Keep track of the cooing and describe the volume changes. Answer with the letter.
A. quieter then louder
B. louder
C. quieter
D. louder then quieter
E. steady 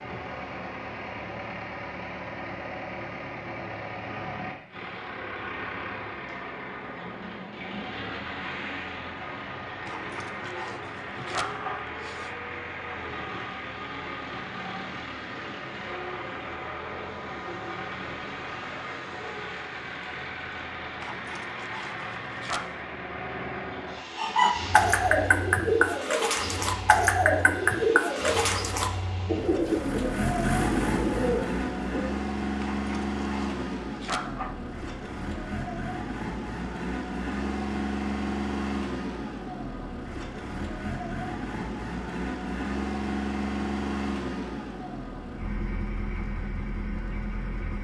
C.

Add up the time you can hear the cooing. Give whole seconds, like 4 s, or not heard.
8 s.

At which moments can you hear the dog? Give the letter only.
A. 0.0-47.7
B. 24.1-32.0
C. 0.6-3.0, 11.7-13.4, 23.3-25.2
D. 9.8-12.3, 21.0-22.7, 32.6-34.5
D.